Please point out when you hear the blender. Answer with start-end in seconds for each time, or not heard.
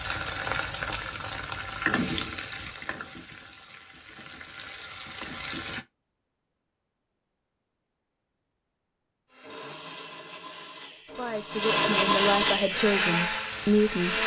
9.3-14.2.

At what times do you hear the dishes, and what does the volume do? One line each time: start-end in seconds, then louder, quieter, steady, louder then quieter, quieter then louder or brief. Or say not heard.
not heard.